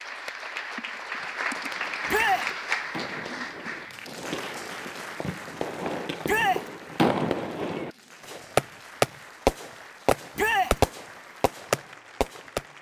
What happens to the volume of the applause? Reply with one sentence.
The loudness of the applause goes down.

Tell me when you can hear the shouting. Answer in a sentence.
You can hear the shouting from 2.0 to 2.5 s, from 6.2 to 6.7 s and from 10.3 to 10.8 s.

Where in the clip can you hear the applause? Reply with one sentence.
You can hear the applause from 0.0 to 12.7 s.